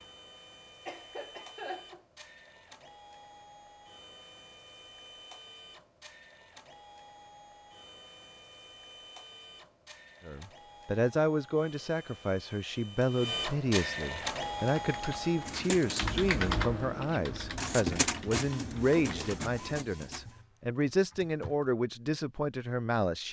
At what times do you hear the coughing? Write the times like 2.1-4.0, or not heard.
0.8-2.0.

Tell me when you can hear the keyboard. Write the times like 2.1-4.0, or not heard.
14.3-21.7.